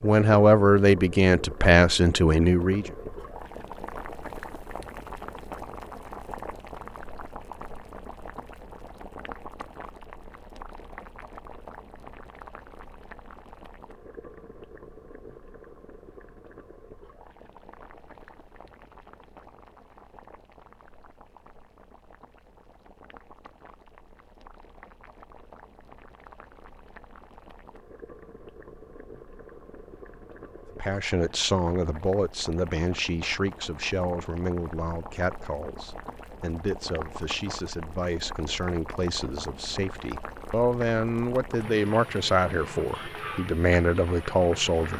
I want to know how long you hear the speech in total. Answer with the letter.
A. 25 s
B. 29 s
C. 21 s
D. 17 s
D.